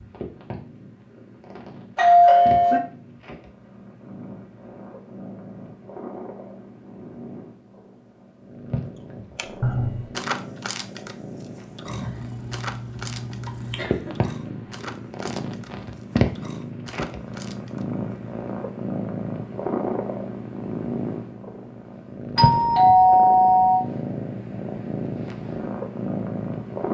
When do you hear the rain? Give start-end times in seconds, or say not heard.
not heard.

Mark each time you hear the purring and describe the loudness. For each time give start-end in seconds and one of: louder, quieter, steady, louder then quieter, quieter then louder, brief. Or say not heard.
0.0-26.8 louder.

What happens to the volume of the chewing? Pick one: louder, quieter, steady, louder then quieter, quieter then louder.
quieter.